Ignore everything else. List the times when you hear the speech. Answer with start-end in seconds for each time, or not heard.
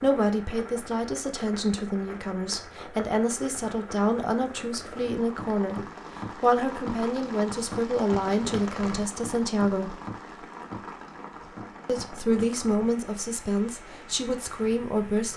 0.0-10.0, 11.8-15.3.